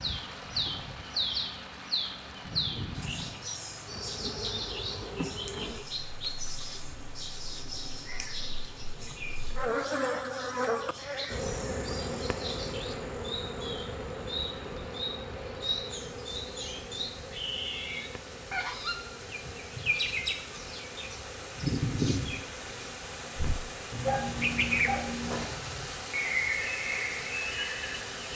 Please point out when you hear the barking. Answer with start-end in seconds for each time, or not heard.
23.9-25.5.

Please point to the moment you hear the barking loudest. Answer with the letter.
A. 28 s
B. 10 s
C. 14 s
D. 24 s
D.